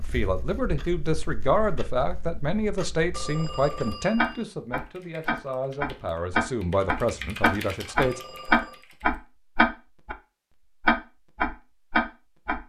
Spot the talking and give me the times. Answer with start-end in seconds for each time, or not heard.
0.0-8.2.